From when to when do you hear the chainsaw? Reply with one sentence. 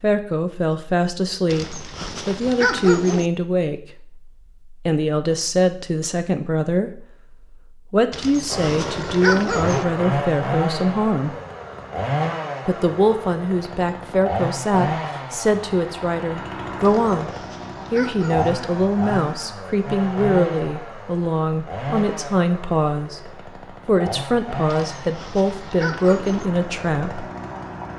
The chainsaw can be heard from 8.5 to 27.9 s.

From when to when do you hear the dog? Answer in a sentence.
You can hear the dog from 1.5 to 3.2 s, from 8.1 to 9.8 s, from 16.8 to 18.5 s and from 24.6 to 26.4 s.